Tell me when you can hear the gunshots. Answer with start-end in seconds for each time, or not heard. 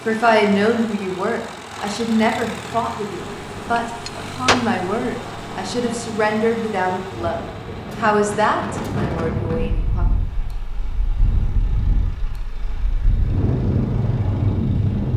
3.8-4.7.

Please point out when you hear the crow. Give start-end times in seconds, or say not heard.
not heard.